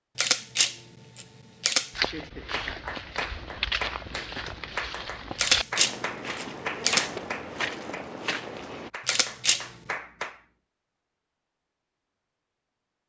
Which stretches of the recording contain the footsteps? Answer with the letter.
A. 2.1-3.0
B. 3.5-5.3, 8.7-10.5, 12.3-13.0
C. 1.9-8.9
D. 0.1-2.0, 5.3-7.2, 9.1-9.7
C.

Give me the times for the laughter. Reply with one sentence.
The laughter can be heard from 2.1 to 3.0 s.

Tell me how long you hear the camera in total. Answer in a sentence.
The camera can be heard for 4 seconds in total.